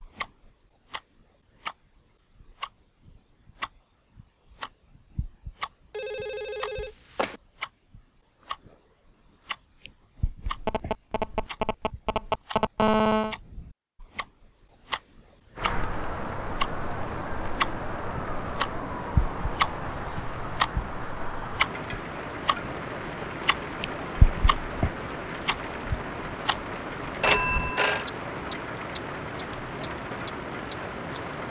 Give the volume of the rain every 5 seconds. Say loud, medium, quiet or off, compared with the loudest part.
off, off, off, loud, loud, loud, loud.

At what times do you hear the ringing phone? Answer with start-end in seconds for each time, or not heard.
5.9-7.4, 10.6-13.3, 27.2-28.1.